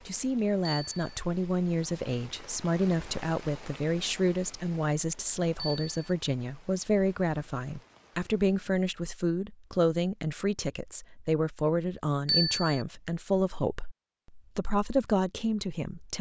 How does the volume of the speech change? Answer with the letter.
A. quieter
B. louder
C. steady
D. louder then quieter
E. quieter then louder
C.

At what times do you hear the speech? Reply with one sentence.
You can hear the speech from 0.1 to 16.1 s.